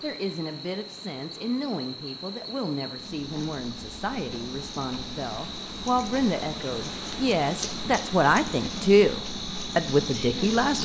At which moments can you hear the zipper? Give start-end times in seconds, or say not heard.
not heard.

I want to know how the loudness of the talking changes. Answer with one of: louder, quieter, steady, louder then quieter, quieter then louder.
louder.